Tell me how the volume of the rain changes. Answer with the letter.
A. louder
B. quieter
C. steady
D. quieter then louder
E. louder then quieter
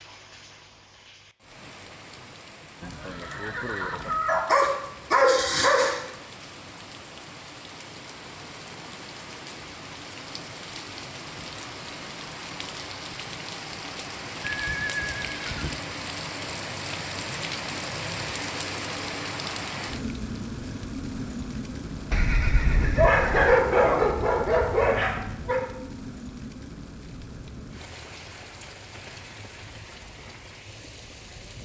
E.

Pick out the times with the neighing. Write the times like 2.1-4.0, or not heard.
2.8-4.5, 14.4-15.8, 22.1-23.6.